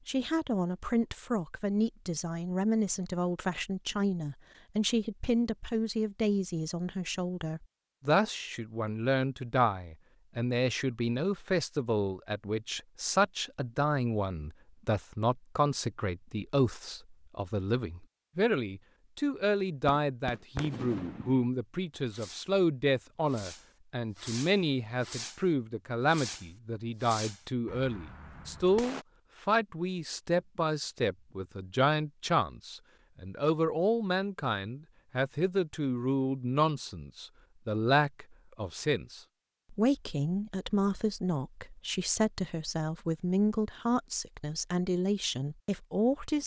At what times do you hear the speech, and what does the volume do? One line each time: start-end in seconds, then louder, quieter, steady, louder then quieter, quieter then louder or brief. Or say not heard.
0.1-46.4 steady.